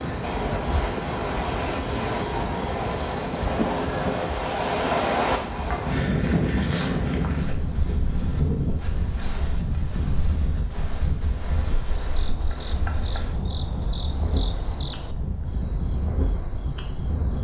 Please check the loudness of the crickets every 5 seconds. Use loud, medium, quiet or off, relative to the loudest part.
loud, medium, medium, medium.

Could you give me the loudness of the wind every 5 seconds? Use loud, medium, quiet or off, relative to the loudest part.
loud, loud, medium, medium.